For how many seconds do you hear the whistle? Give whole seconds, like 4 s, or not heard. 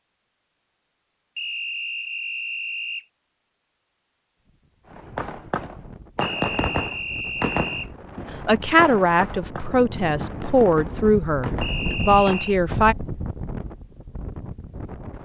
4 s.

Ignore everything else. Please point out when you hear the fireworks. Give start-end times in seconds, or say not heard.
4.9-12.5.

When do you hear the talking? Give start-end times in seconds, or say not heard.
8.4-12.9.